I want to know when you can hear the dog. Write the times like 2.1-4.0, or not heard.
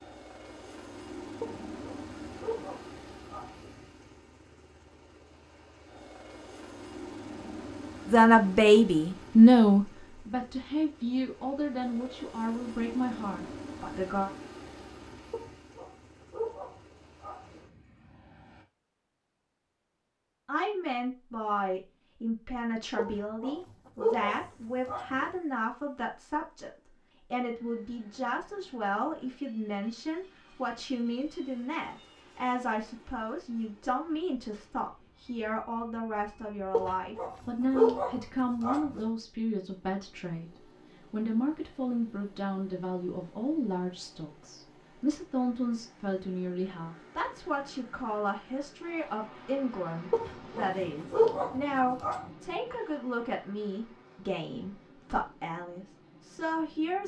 1.4-3.8, 15.3-17.6, 22.9-25.3, 36.7-39.0, 50.1-52.2.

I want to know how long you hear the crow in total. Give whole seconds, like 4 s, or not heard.
not heard.